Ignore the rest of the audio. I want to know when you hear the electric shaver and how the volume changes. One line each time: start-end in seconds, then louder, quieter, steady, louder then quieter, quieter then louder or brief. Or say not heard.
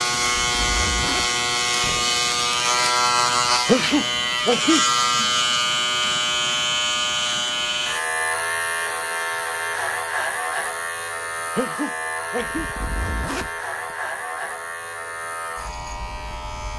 0.0-16.7 quieter.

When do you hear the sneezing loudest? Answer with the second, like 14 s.
4 s.